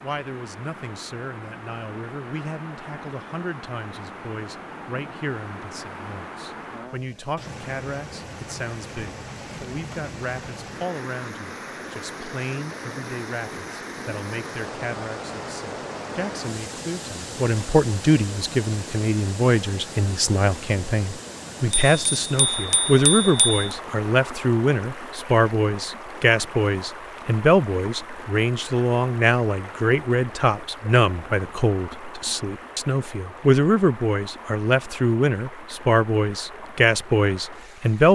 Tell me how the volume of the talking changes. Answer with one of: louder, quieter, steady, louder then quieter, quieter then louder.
louder.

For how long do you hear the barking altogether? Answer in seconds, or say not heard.
not heard.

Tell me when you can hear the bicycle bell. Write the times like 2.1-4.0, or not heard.
21.7-23.6.